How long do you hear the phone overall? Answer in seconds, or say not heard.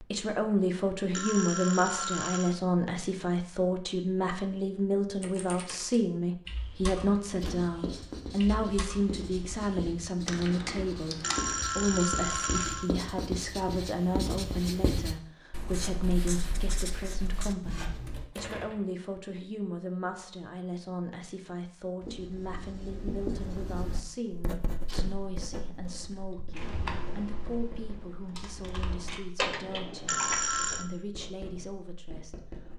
4 s.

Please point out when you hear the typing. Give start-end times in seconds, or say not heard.
5.2-11.6, 26.6-30.4.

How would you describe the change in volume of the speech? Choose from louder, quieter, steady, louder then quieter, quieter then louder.
quieter.